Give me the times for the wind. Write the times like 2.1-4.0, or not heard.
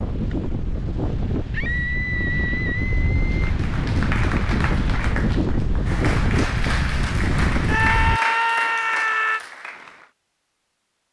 0.0-8.2.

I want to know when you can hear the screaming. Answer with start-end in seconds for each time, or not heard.
1.5-3.4, 7.7-9.4.